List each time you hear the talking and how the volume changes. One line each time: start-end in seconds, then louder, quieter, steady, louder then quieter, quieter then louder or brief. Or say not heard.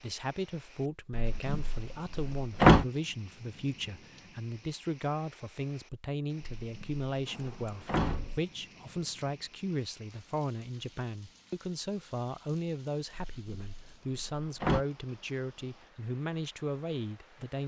0.0-17.6 steady.